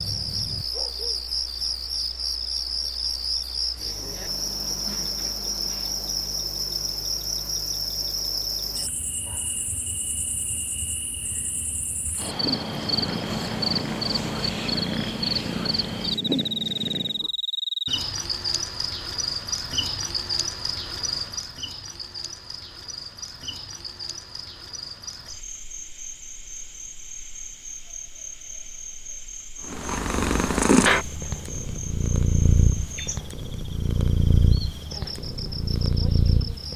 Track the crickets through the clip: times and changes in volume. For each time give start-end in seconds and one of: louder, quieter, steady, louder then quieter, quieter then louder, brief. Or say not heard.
0.0-36.7 quieter.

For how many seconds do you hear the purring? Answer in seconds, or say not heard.
12 s.